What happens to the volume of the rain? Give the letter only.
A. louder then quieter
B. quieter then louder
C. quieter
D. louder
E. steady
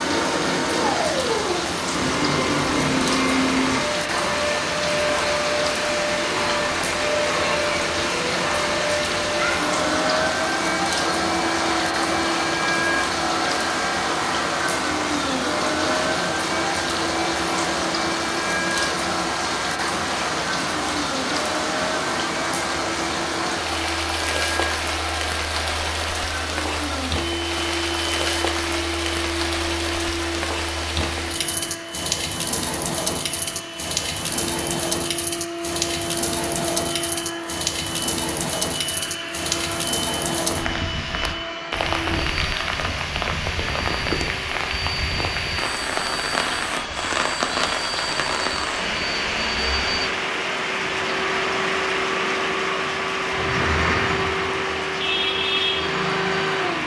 E.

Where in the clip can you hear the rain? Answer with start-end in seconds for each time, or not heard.
0.0-56.8.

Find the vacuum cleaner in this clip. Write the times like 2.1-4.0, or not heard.
0.0-56.8.